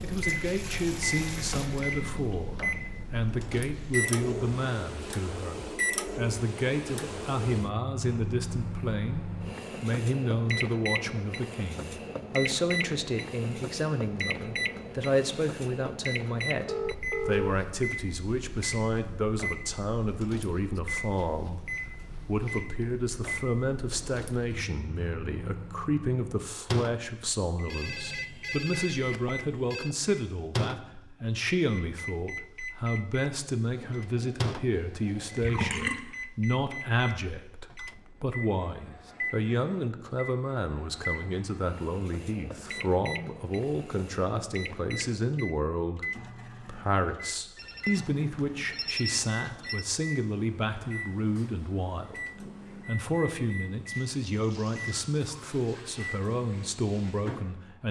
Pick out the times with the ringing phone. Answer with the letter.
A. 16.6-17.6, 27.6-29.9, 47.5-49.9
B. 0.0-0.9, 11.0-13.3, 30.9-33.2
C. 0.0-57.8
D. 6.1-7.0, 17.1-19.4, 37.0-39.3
A.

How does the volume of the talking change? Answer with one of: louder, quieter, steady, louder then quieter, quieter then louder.
steady.